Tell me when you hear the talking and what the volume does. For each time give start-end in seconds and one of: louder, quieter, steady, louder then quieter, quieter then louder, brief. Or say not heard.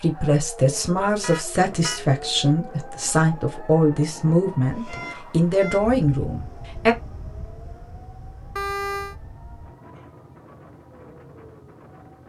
0.0-7.0 steady.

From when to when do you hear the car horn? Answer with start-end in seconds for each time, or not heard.
1.2-2.0, 4.8-6.0, 8.6-9.2.